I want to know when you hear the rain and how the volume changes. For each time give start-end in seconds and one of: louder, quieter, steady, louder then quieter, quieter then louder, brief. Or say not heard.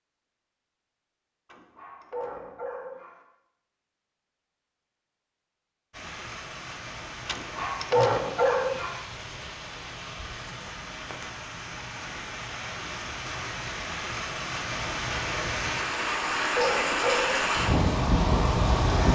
5.9-19.1 louder.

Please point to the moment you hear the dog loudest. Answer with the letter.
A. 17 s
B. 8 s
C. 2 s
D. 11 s
B.